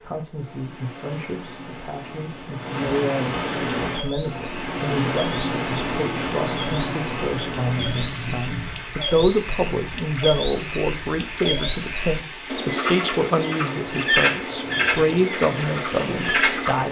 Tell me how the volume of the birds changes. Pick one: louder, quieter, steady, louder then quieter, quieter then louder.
louder.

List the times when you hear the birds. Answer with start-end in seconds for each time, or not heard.
3.8-16.8.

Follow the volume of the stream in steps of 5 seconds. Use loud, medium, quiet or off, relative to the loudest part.
loud, loud, medium, medium.